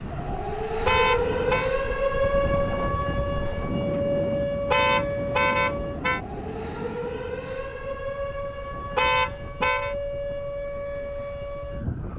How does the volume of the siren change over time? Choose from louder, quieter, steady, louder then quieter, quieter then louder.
quieter.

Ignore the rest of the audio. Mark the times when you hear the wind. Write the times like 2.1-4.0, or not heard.
0.0-12.1.